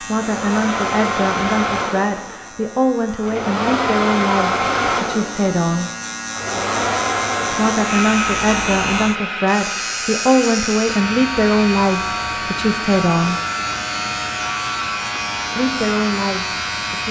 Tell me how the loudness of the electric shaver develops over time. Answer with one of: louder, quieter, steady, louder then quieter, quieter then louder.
louder.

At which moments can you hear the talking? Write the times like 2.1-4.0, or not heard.
0.0-5.9, 7.5-13.3, 15.6-17.0.